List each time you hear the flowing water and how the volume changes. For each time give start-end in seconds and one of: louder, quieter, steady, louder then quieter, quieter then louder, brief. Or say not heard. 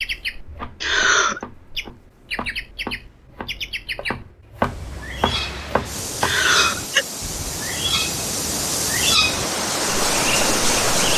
5.2-11.1 louder.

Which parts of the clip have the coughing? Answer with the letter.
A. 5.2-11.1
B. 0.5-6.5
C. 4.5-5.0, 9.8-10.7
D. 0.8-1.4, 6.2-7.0
D.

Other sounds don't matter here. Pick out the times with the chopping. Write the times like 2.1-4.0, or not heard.
0.5-6.5.